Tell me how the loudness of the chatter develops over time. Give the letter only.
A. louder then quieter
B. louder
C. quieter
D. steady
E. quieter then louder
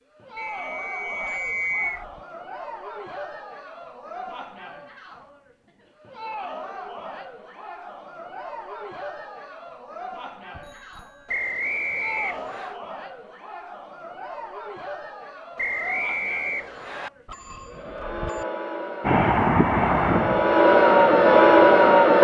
B.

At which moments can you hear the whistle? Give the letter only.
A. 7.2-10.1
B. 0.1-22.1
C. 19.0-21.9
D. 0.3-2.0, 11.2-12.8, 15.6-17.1
D.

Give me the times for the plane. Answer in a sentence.
You can hear the plane from 19.0 to 21.9 s.